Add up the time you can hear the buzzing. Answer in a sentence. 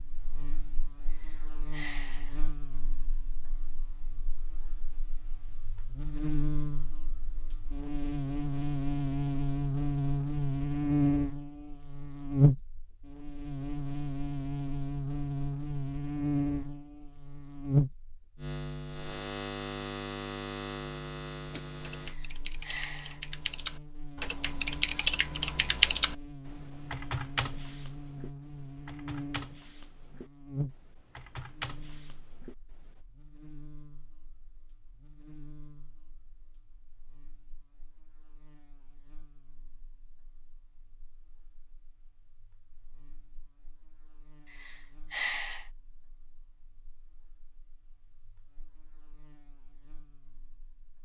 You can hear the buzzing for 51 seconds altogether.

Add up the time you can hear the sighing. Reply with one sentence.
You can hear the sighing for 4 seconds altogether.